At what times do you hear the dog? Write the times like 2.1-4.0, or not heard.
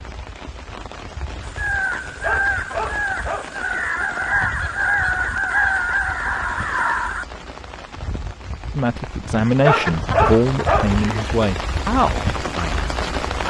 2.2-3.9, 9.7-11.3.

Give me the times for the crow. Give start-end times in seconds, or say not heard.
1.4-7.2.